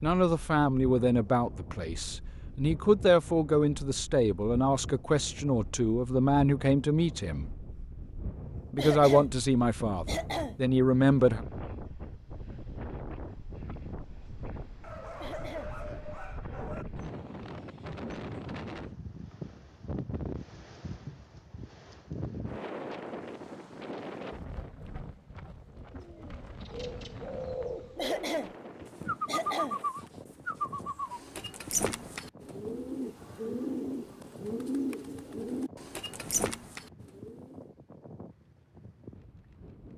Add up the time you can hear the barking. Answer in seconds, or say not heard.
2 s.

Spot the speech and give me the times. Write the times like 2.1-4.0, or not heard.
0.0-7.5, 8.7-11.4.